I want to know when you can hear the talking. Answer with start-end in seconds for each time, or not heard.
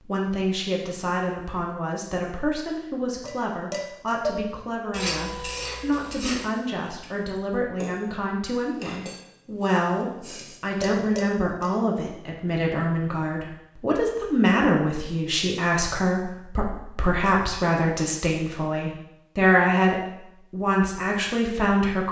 0.0-22.0.